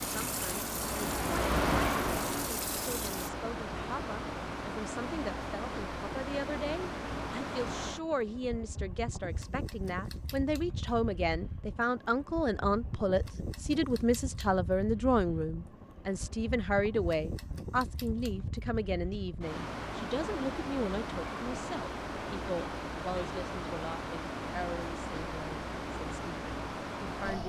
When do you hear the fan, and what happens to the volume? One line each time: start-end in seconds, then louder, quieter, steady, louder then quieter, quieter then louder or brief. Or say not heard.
0.0-27.4 quieter then louder.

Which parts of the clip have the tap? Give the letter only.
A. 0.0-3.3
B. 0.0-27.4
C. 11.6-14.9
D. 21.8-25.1
A.